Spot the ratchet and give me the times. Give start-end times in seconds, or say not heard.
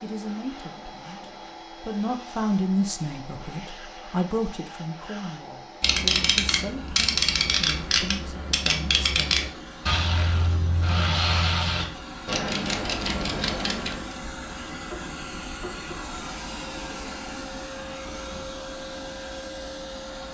5.8-14.2.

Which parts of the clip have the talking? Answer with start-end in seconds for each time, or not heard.
0.0-9.3.